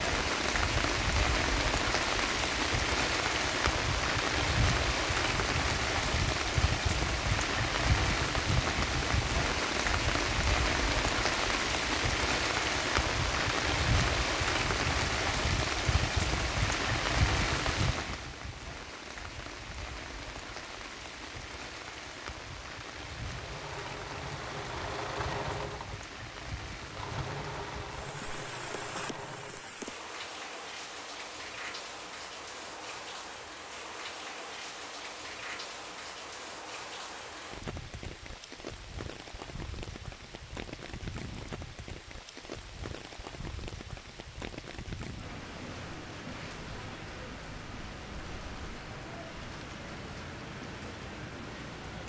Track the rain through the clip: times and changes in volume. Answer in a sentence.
The rain can be heard from 0.0 to 52.0 s, getting quieter.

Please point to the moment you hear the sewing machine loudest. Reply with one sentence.
The volume of the sewing machine peaks at 25 seconds.